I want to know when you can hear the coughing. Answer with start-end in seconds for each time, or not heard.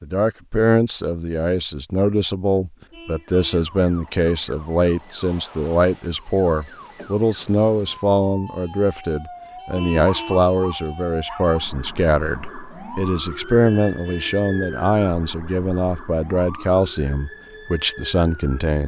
not heard.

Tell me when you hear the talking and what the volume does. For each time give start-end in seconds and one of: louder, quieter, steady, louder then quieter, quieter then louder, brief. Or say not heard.
0.0-18.8 steady.